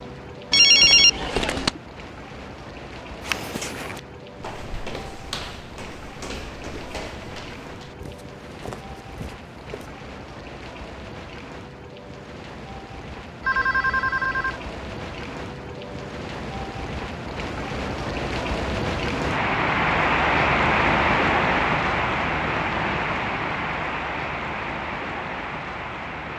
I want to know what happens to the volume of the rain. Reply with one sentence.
The loudness of the rain goes up.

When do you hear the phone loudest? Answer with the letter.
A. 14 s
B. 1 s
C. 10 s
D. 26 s
B.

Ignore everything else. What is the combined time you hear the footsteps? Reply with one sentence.
The footsteps can be heard for 7 seconds in total.